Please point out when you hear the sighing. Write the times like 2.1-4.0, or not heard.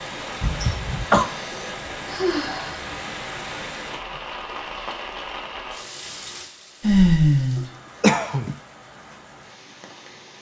1.2-2.9, 6.8-7.7.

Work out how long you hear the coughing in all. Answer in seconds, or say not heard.
2 s.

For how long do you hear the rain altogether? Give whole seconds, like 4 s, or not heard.
10 s.